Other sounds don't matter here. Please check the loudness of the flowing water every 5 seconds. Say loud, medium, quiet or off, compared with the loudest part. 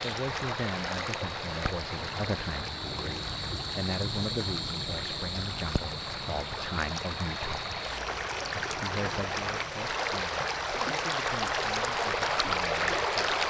medium, medium, loud.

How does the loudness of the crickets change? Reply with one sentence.
The loudness of the crickets goes up, then down.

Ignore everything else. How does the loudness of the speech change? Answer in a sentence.
The loudness of the speech goes down.